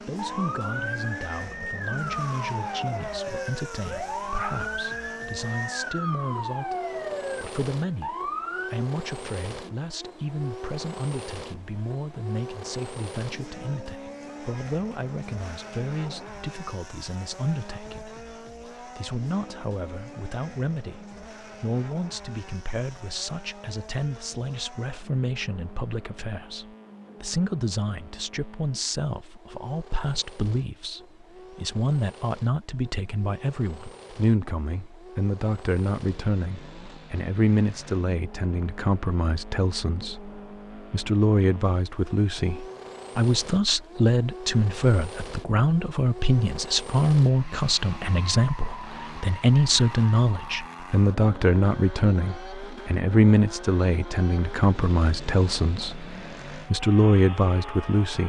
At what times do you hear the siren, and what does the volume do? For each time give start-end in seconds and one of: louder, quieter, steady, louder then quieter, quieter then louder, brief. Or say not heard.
0.1-8.8 steady.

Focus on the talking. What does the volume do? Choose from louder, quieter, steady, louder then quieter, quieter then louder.
louder.